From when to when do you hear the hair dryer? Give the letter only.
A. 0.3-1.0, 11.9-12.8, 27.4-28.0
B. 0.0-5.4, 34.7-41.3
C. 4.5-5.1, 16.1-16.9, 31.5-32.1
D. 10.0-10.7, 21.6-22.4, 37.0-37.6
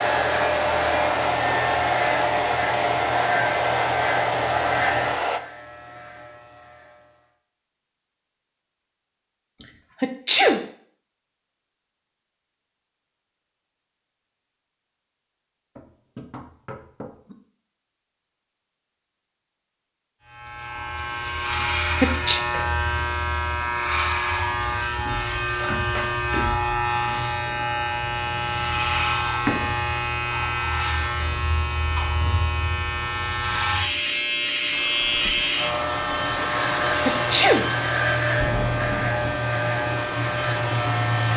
B.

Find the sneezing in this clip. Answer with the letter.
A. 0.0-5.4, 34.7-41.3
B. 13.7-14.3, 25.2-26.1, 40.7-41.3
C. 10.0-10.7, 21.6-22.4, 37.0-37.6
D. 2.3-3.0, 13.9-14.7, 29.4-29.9
C.